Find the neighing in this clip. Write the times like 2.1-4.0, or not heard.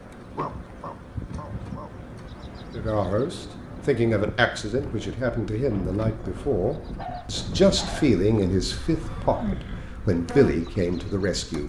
9.2-9.9.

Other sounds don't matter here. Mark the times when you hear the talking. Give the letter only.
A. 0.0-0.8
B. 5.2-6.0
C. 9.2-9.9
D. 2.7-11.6
D.